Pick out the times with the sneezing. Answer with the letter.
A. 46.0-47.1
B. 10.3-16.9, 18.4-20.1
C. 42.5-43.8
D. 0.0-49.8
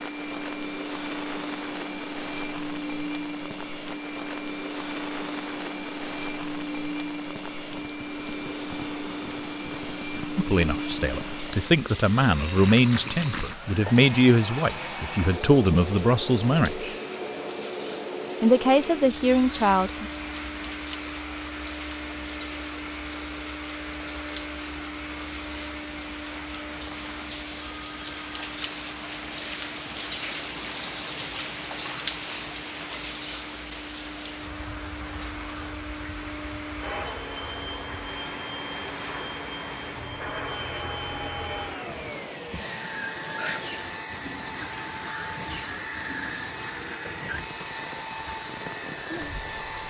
C.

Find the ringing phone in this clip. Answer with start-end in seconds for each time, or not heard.
27.6-28.6.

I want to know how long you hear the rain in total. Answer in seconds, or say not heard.
50 s.